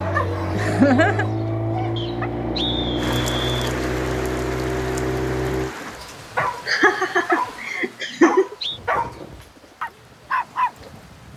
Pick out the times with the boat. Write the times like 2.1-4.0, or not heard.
0.0-5.8.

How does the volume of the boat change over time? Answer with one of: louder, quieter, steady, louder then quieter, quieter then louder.
steady.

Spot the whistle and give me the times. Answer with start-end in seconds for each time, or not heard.
1.9-3.7, 8.0-8.8.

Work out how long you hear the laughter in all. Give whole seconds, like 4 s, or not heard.
3 s.